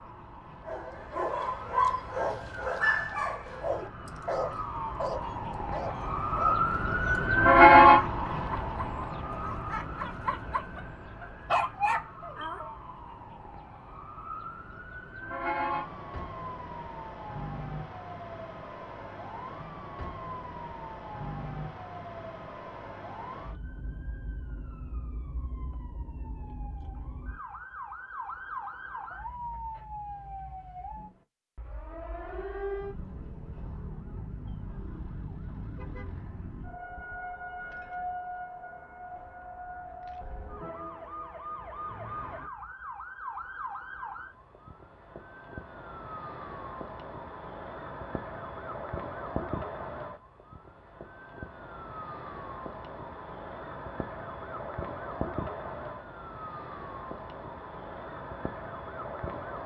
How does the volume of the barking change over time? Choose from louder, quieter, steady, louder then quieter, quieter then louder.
quieter then louder.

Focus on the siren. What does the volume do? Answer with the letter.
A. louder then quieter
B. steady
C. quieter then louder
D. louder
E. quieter
E.